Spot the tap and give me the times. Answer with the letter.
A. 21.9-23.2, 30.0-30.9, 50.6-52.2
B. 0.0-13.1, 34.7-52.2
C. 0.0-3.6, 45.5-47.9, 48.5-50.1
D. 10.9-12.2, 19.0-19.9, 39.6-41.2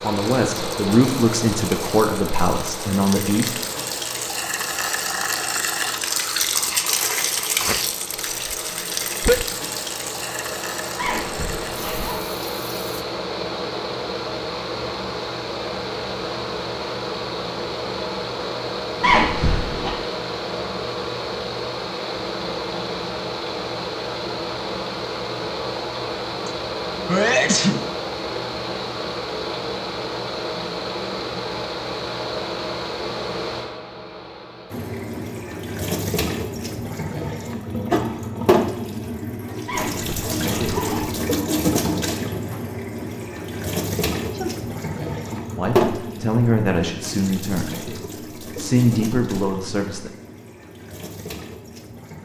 B.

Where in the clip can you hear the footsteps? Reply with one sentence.
You can't hear the footsteps here.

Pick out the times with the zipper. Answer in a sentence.
You can hear the zipper from 10.9 to 12.2 s, from 19.0 to 19.9 s and from 39.6 to 41.2 s.